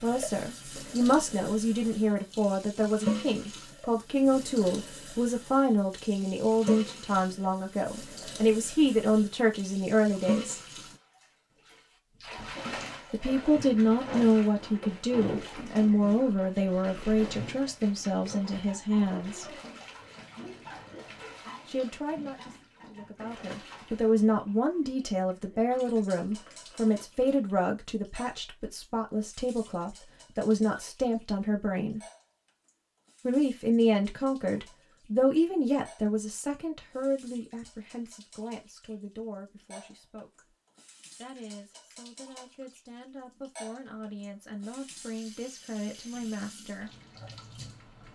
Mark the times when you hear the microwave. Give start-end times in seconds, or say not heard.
not heard.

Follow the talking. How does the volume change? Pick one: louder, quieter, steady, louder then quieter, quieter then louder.
quieter.